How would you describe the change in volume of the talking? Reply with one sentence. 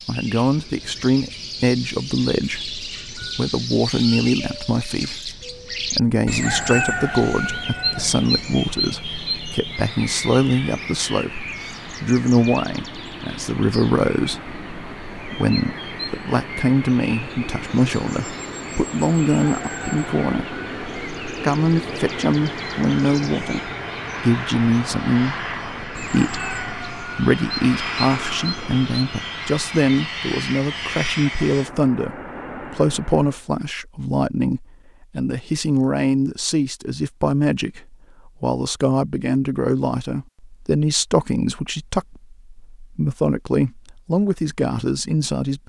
The loudness of the talking stays about the same.